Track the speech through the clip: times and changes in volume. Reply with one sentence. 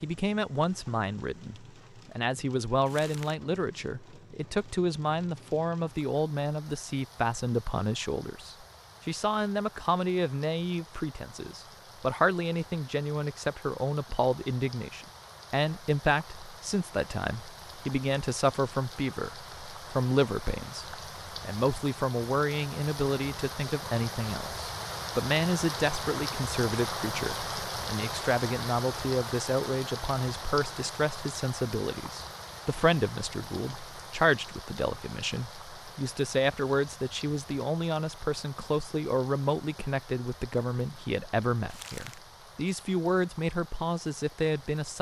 You can hear the speech from 0.0 to 44.9 s, at a steady volume.